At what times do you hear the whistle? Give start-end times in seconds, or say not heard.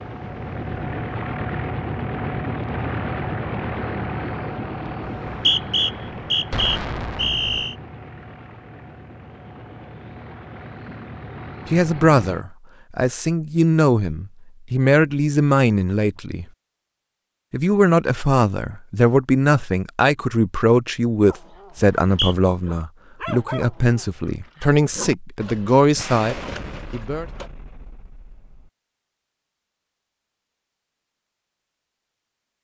5.2-7.8, 21.8-22.4.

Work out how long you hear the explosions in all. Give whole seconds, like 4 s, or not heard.
4 s.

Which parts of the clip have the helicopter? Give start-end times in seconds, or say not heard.
0.0-12.4.